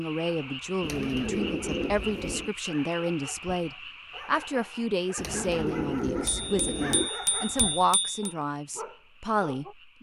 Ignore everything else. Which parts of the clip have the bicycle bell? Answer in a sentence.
The bicycle bell can be heard from 6.2 to 8.3 s.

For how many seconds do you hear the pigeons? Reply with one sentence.
The pigeons can be heard for 4 seconds in total.